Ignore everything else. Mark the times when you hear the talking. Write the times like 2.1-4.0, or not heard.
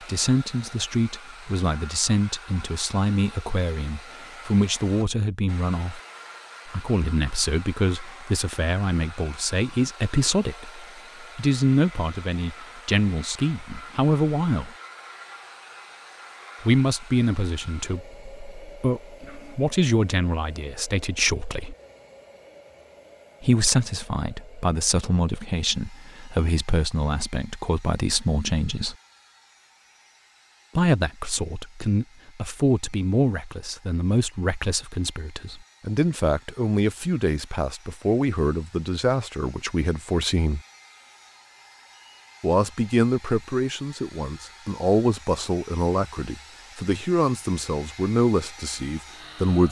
0.1-6.0, 6.7-14.7, 16.6-21.8, 23.4-28.9, 30.8-40.6, 42.4-49.6.